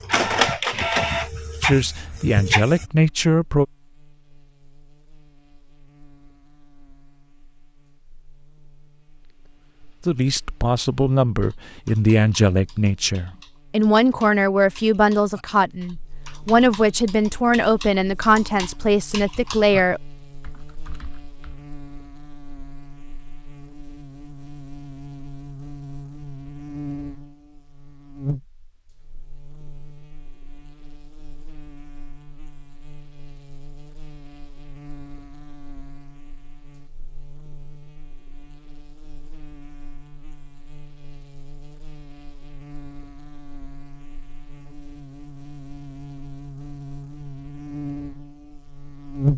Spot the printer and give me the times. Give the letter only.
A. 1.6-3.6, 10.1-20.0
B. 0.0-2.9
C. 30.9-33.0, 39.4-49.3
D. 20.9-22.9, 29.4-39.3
B.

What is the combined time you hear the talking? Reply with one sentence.
The talking can be heard for 12 seconds in total.